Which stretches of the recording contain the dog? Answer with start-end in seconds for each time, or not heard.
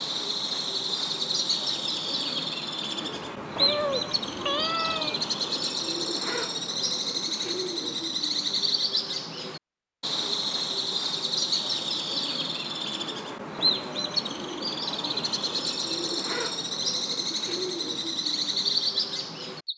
not heard.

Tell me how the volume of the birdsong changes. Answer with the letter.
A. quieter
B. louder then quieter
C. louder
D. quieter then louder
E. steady
E.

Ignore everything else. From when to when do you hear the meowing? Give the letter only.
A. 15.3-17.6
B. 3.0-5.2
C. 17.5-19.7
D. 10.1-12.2
B.